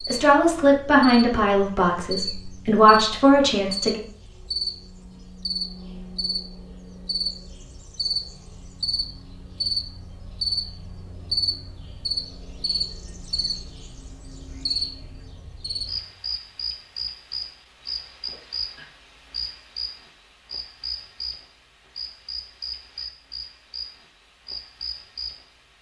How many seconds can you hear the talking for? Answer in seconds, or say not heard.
4 s.